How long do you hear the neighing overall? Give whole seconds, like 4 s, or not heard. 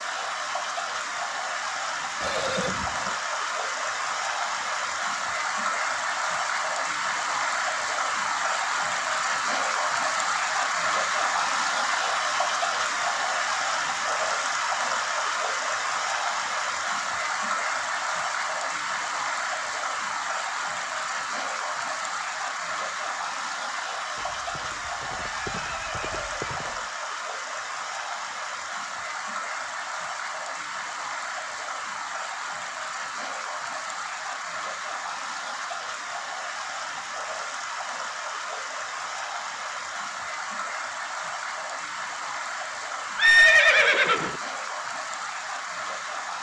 5 s.